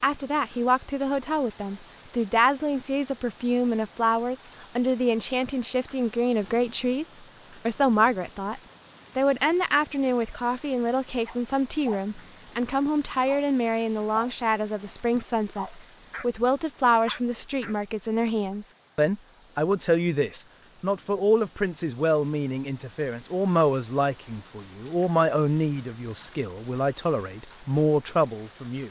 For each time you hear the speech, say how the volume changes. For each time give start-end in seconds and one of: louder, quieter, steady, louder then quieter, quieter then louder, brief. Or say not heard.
0.0-28.8 steady.